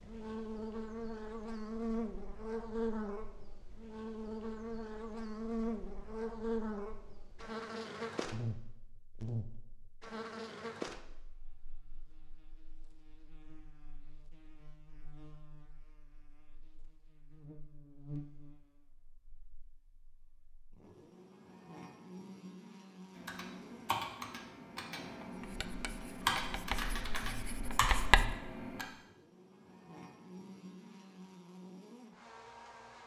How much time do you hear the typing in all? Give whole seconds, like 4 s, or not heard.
6 s.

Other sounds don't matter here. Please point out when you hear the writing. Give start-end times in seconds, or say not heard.
25.3-28.4.